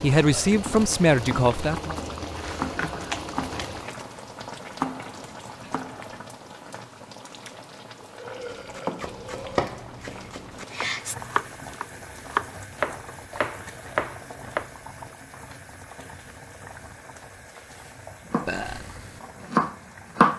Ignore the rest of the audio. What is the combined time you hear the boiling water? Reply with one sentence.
You can hear the boiling water for 20 seconds altogether.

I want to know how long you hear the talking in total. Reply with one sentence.
You can hear the talking for 2 seconds altogether.